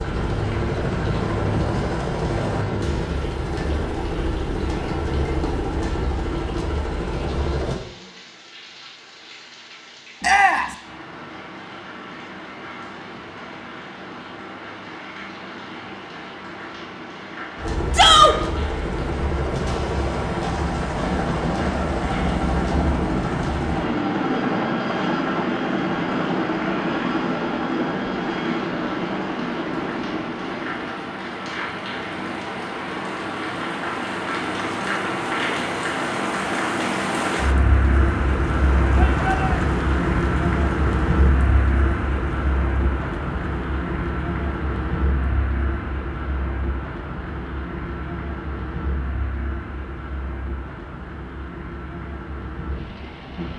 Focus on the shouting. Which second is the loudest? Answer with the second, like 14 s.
18 s.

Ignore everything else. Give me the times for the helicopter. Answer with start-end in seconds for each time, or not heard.
0.0-7.8, 17.6-30.9.